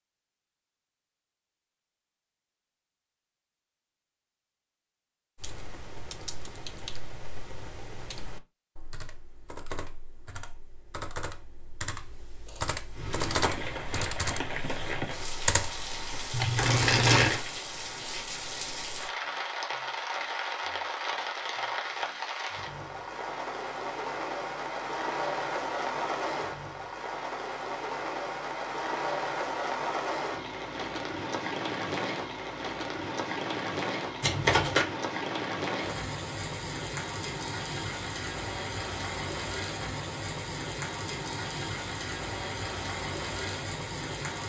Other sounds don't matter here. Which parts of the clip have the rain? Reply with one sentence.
You can hear the rain from 12.9 to 44.4 s.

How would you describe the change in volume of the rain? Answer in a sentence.
The loudness of the rain stays about the same.